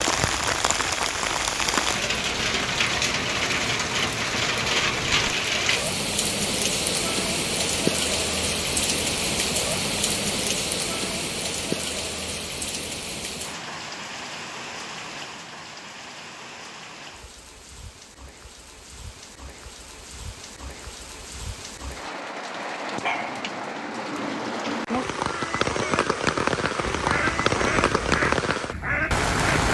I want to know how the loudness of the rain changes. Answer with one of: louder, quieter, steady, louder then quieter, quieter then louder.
quieter then louder.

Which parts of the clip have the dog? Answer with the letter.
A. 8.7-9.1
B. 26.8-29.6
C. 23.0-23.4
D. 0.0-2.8
C.